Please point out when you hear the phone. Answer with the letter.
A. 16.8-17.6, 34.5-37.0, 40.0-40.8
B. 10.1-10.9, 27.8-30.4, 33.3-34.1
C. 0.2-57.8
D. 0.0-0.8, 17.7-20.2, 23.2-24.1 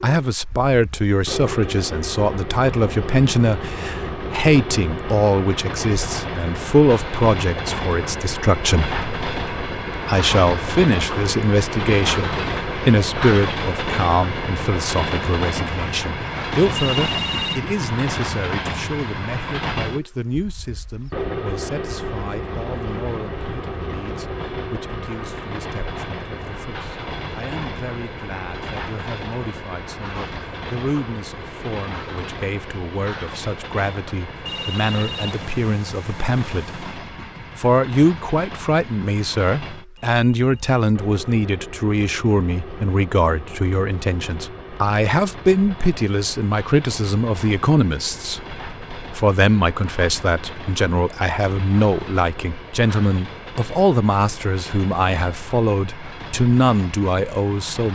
A.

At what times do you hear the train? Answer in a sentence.
The train can be heard from 0.2 to 57.8 s.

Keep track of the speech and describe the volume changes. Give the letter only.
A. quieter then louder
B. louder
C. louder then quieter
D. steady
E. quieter
A.